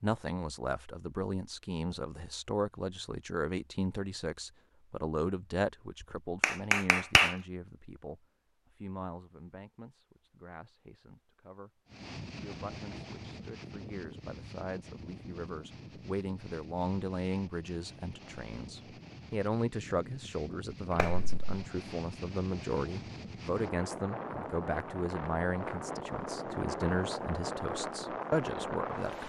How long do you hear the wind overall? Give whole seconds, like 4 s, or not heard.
17 s.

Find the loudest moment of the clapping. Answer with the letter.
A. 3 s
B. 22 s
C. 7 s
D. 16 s
C.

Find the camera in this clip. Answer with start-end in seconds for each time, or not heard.
not heard.